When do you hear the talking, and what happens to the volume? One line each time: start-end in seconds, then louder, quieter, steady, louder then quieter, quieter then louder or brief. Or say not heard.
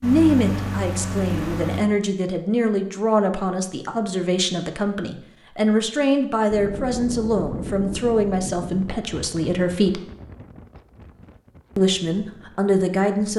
0.0-10.0 steady
11.8-13.3 brief.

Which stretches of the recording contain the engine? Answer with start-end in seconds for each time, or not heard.
0.0-1.9.